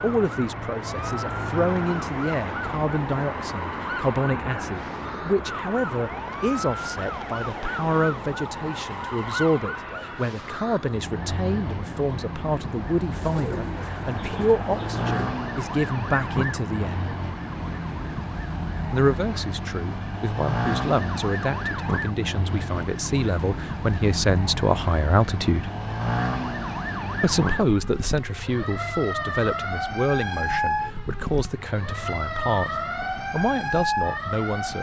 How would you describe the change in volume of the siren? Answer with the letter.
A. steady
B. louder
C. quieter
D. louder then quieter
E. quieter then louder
B.